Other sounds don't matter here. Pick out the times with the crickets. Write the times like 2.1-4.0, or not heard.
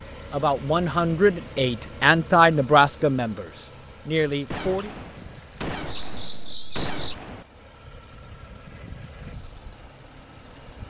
0.0-7.2.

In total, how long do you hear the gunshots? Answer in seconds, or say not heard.
3 s.